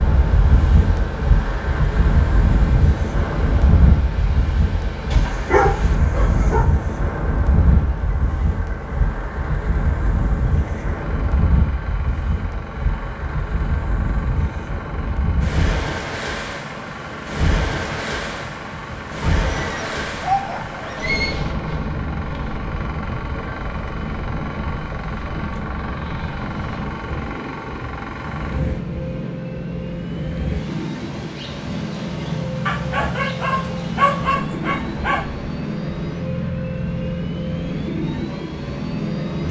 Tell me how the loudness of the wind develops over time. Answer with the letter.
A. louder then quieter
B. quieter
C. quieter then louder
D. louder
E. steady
B.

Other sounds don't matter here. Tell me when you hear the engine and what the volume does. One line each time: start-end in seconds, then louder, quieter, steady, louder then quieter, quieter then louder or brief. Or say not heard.
0.0-39.4 louder.